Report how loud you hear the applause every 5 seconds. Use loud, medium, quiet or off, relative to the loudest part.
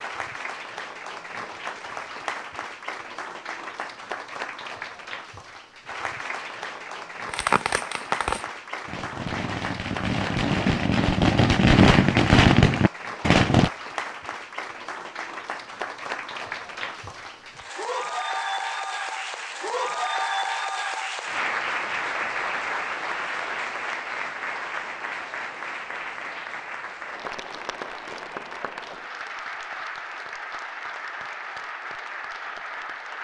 medium, medium, medium, loud, loud, medium, medium.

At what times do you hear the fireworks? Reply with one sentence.
The fireworks can be heard from 7.2 to 13.7 s.